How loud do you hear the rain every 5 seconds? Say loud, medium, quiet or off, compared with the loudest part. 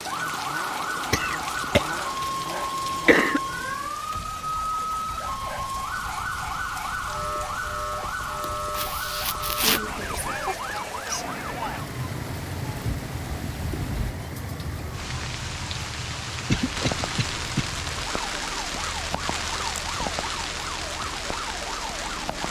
medium, medium, medium, loud, loud.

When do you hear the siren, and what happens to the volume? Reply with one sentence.
The siren can be heard from 0.0 to 22.4 s, getting quieter.